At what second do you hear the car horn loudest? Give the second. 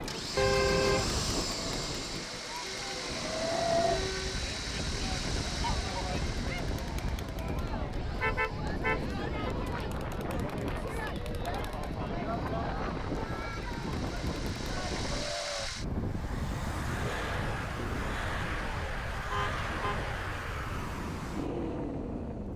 1 s.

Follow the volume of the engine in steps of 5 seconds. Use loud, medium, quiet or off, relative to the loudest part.
loud, medium, medium, loud, loud.